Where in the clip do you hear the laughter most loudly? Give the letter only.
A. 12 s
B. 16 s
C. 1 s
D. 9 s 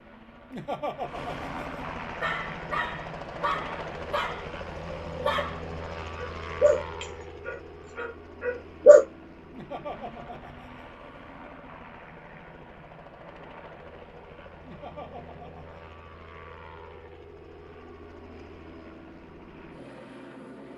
C.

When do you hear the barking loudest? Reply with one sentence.
The loudest moment of the barking is at 9 seconds.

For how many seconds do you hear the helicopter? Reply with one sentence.
The helicopter can be heard for 21 seconds in total.